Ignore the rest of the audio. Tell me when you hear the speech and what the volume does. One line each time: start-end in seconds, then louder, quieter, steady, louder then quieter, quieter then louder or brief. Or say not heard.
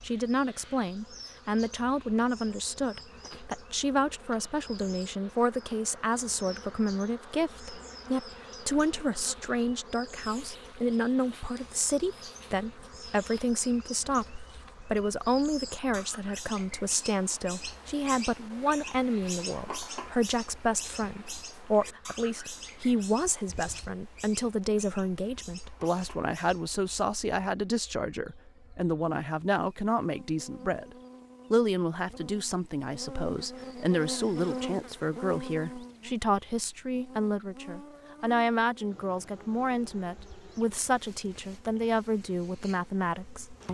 0.0-43.6 steady.